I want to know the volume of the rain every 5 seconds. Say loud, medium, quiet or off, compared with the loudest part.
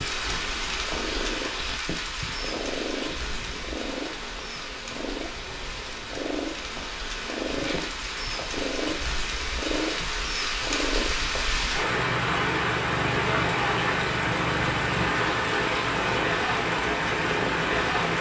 medium, medium, loud, loud.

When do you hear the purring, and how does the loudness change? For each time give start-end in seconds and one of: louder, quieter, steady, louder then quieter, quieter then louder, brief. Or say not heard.
0.0-18.1 steady.